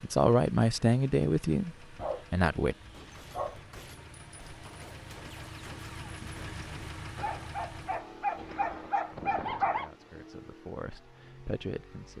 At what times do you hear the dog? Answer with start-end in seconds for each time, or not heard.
1.9-3.6, 7.2-9.9.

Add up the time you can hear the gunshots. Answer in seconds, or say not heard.
4 s.